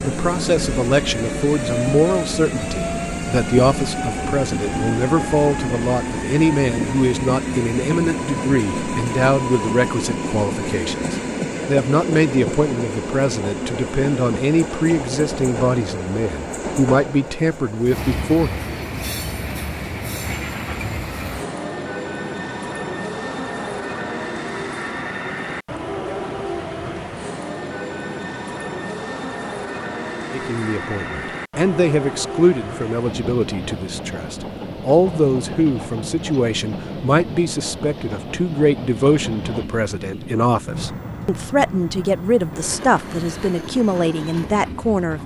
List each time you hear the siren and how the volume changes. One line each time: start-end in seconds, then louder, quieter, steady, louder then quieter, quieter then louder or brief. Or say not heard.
not heard.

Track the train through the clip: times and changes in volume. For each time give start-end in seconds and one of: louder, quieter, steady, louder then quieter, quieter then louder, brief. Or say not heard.
0.0-45.2 quieter.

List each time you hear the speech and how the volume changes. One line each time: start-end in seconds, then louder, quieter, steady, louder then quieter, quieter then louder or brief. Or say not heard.
0.0-18.6 steady
30.3-45.2 steady.